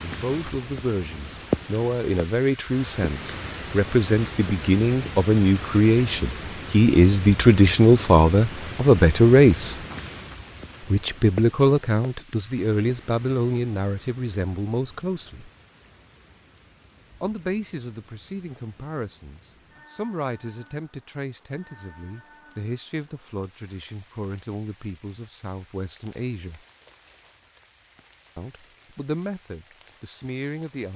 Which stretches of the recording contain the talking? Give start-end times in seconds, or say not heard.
0.0-9.8, 10.9-15.5, 17.2-26.6, 28.4-30.9.